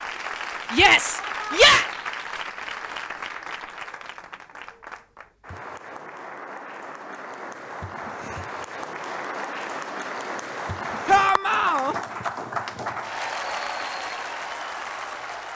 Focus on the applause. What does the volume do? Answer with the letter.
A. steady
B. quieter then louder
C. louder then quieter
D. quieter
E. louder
B.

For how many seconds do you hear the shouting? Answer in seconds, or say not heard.
2 s.